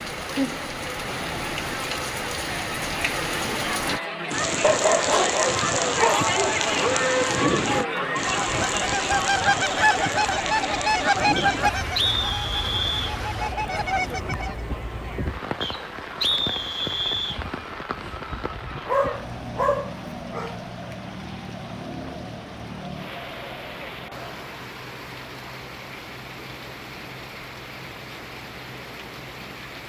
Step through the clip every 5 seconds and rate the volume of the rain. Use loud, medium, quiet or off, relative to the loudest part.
loud, loud, medium, medium, medium, medium.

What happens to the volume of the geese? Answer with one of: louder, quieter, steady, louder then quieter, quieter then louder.
quieter then louder.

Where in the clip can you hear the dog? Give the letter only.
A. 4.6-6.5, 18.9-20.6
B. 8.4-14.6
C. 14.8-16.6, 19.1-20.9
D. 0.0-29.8
A.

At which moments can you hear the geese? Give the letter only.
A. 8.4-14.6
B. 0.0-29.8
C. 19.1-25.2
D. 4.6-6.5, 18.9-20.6
A.